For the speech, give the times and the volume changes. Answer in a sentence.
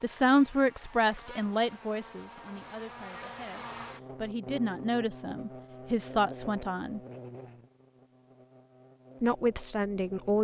You can hear the speech from 0.0 to 7.0 s, getting quieter then louder; and briefly from 9.2 to 10.4 s.